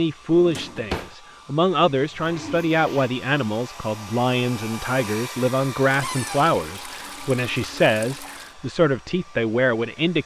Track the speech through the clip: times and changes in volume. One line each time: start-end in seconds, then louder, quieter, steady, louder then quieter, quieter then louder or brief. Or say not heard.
0.0-10.2 steady.